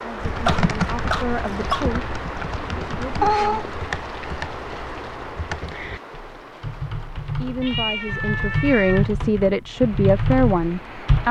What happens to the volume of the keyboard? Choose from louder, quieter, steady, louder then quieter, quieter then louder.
quieter then louder.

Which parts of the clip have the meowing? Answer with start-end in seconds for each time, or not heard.
3.2-3.6, 7.6-9.2.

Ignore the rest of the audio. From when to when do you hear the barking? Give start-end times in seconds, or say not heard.
0.0-1.9.